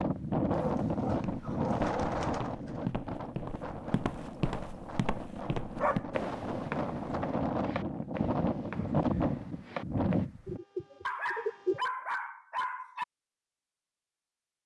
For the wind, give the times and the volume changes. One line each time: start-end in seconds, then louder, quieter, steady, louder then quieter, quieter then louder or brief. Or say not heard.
0.0-10.6 quieter then louder.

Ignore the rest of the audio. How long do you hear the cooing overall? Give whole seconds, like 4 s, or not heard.
4 s.